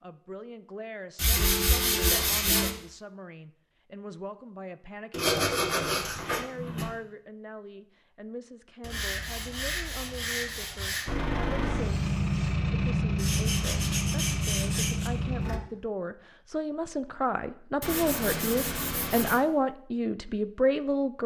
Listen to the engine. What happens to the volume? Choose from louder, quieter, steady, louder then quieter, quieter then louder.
steady.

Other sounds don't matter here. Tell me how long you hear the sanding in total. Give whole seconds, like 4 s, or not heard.
9 s.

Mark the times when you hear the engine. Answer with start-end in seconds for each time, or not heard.
11.1-15.6.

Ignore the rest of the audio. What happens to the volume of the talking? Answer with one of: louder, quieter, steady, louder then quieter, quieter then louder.
louder.